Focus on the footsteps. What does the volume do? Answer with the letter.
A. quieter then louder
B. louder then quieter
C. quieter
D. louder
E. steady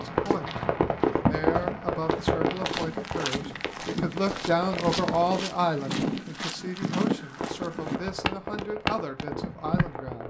D.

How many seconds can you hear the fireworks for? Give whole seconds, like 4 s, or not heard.
8 s.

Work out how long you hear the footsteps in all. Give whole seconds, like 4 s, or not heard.
10 s.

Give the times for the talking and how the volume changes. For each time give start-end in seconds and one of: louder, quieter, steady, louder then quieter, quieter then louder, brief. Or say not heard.
0.0-0.7 brief
1.2-10.2 louder then quieter.